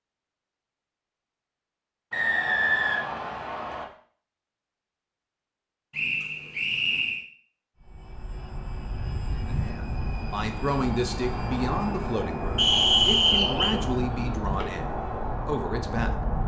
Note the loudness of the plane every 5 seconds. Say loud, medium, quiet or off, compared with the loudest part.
off, medium, loud, loud.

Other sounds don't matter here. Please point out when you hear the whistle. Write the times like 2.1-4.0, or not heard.
2.1-3.9, 5.9-7.2, 12.6-13.8.